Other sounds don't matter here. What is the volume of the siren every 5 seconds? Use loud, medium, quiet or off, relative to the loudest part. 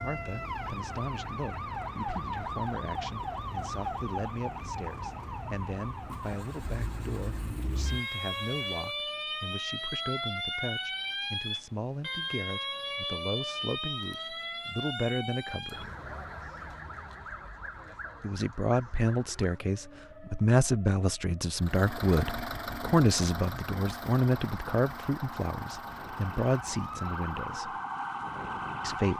loud, loud, loud, medium, quiet, loud.